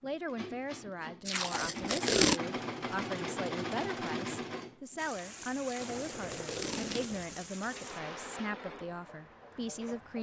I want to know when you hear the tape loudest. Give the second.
2 s.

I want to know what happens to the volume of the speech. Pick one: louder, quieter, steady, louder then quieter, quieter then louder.
steady.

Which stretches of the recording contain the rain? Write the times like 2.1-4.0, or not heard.
5.0-10.1.